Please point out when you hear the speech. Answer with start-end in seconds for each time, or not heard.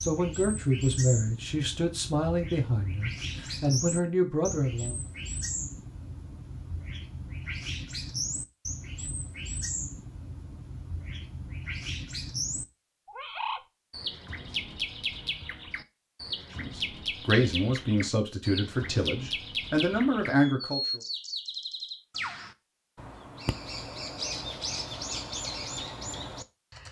0.0-5.0, 16.5-21.0.